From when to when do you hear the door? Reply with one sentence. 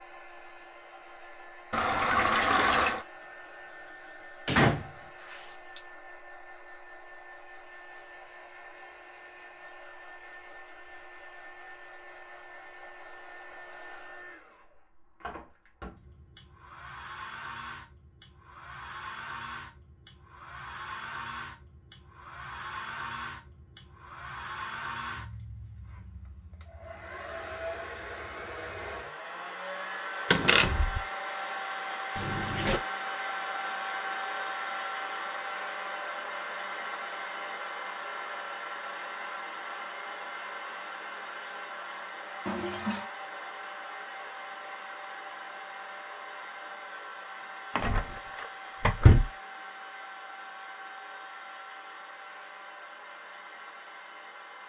You can hear the door from 4.5 to 5.8 s, from 30.3 to 31.0 s and from 47.8 to 49.2 s.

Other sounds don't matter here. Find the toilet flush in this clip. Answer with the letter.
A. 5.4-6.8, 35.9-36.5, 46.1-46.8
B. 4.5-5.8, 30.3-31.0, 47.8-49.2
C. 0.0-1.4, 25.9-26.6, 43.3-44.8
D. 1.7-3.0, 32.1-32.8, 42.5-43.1
D.